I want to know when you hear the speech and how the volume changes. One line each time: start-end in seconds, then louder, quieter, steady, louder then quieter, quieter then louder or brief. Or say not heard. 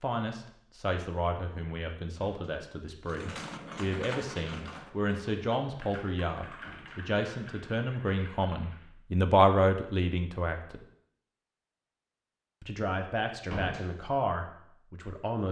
0.0-10.8 louder
12.6-15.4 brief.